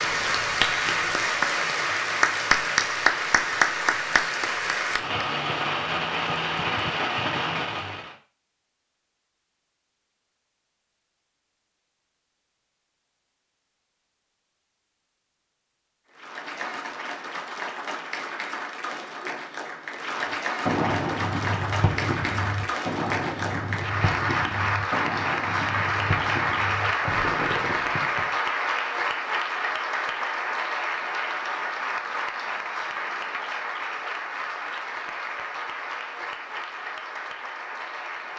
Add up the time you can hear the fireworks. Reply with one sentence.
You can hear the fireworks for 16 seconds altogether.